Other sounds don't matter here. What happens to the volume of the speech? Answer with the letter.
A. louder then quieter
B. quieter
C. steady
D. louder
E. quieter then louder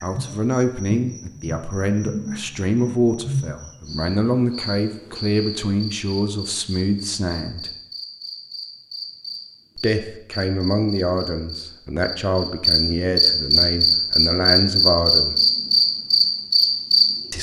C.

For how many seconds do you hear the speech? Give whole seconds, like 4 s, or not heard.
13 s.